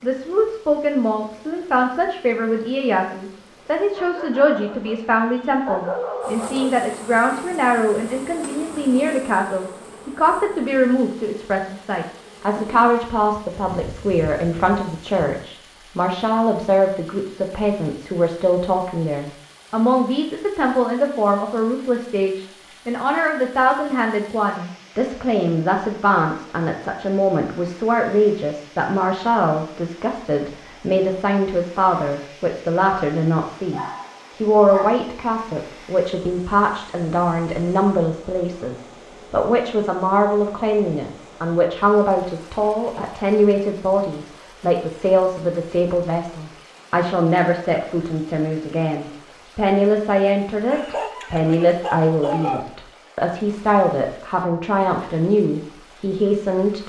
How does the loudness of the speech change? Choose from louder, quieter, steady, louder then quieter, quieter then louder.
steady.